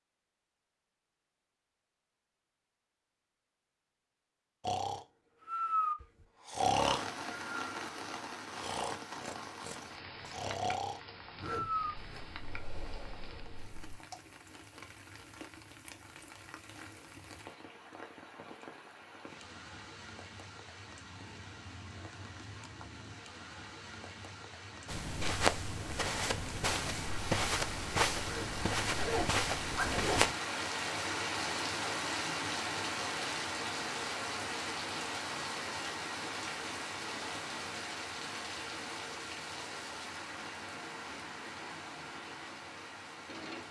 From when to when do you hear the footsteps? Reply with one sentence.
The footsteps can be heard from 24.9 to 30.4 s.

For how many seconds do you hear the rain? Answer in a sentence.
The rain can be heard for 37 seconds in total.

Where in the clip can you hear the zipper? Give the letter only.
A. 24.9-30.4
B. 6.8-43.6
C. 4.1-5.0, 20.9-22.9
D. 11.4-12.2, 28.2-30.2
D.